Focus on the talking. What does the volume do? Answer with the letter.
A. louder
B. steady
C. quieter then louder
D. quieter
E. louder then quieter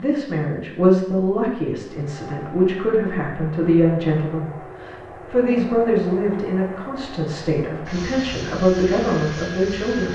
B.